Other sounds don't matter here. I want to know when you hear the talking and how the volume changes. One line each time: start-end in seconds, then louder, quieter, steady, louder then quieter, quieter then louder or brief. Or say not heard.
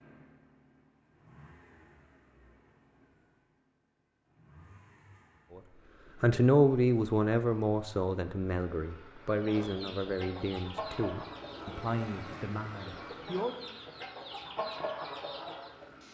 5.5-13.6 quieter.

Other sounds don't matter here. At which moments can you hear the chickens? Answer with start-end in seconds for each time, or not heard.
9.2-15.8.